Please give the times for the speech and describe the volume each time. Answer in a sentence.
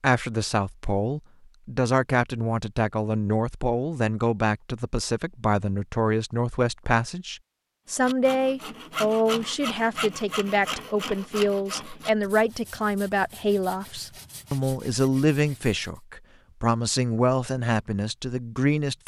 The speech can be heard from 0.0 to 19.0 s, at a steady volume.